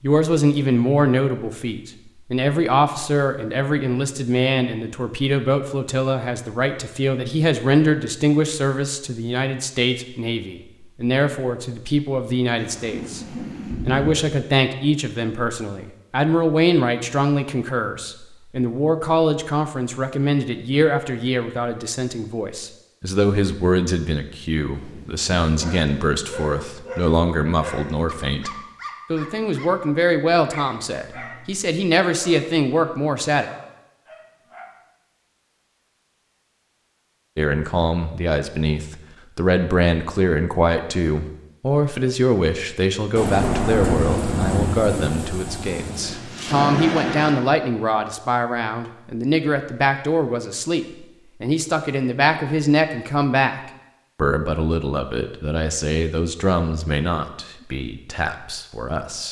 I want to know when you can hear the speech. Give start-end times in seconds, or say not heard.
0.0-13.2, 13.8-28.5, 29.1-33.5, 37.4-53.5, 54.1-59.2.